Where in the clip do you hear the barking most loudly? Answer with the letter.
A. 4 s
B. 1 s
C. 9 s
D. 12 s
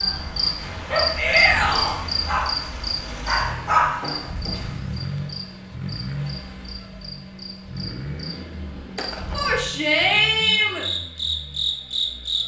A.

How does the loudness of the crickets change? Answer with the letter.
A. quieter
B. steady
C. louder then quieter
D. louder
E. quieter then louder
E.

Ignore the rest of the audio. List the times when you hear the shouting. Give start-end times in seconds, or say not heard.
1.1-2.0, 9.3-10.8.